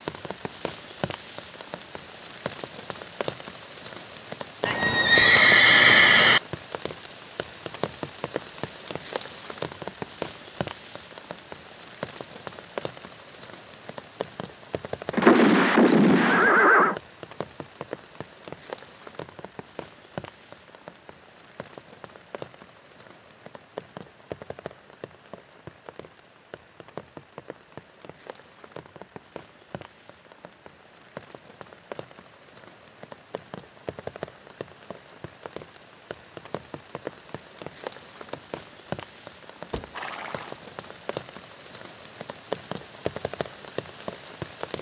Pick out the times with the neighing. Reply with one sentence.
You can hear the neighing from 4.7 to 6.4 s, from 15.1 to 16.9 s and from 39.7 to 41.0 s.